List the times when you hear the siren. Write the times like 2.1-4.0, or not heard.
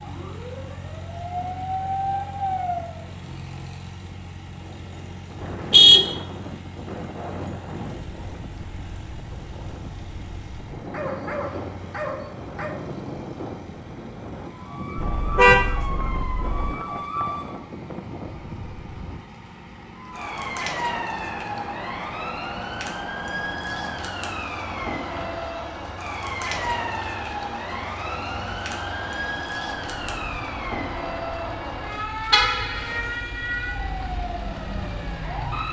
0.0-3.0, 14.4-17.6, 19.9-35.6.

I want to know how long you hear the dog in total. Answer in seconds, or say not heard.
2 s.